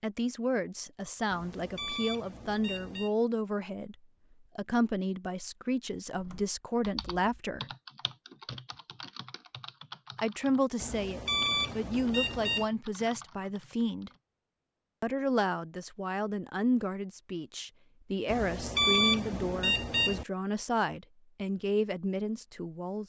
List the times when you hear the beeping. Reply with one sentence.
The beeping can be heard from 1.2 to 3.1 s, from 10.8 to 12.7 s and from 18.2 to 20.2 s.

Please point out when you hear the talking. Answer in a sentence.
You can hear the talking from 0.0 to 4.0 s, from 4.5 to 7.7 s, from 10.2 to 14.1 s and from 15.0 to 23.0 s.